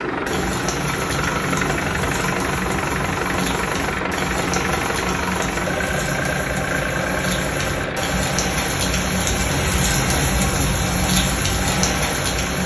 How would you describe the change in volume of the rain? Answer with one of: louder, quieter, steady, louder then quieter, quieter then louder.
louder.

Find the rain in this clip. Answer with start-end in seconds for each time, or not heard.
0.0-12.6.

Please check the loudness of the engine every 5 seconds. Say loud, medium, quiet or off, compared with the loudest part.
loud, loud, medium.